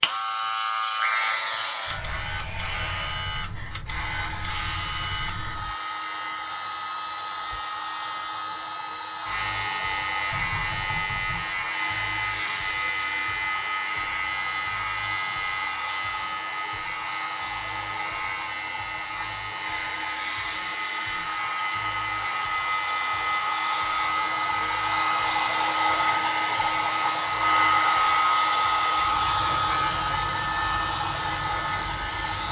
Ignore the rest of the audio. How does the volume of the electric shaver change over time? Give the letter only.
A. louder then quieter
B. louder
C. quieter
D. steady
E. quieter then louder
D.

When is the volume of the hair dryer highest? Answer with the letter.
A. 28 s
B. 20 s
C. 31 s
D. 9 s
A.